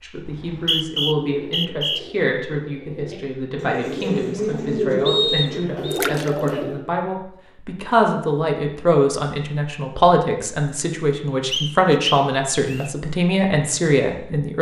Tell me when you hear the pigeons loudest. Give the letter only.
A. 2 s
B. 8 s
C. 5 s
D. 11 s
C.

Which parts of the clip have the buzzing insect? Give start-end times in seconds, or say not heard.
not heard.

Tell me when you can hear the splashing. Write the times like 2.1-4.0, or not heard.
5.9-6.5.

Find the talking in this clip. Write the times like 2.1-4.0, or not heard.
0.0-14.5.